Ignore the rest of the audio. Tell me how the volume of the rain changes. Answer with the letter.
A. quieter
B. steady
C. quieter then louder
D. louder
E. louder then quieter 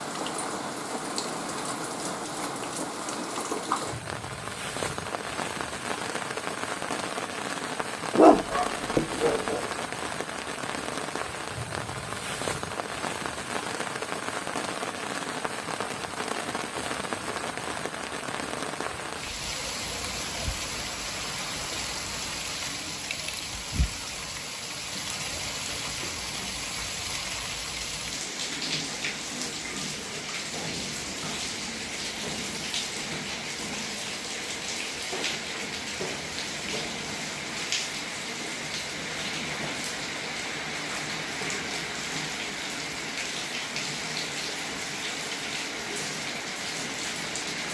B.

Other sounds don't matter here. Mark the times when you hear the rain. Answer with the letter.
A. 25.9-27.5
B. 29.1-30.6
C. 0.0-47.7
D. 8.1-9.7
C.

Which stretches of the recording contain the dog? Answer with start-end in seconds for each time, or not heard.
8.1-9.7.